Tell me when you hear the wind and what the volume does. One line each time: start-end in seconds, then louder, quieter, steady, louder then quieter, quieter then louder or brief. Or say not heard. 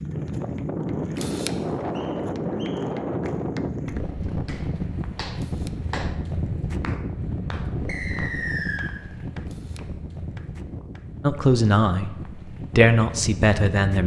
0.0-14.0 quieter.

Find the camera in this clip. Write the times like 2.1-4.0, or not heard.
1.1-1.6, 5.3-5.8, 9.4-9.8.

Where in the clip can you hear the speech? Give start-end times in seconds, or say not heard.
11.2-14.0.